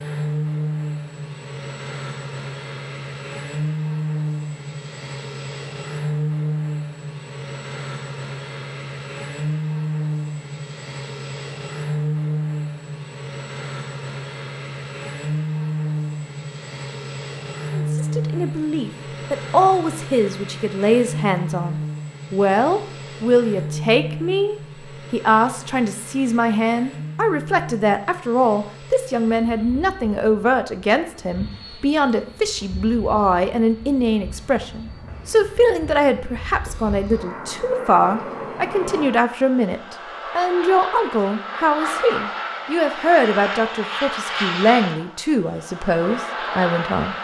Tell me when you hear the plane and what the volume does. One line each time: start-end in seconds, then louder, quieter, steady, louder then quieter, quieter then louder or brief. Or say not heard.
0.0-47.1 quieter then louder.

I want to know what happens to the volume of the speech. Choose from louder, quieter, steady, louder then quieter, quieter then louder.
steady.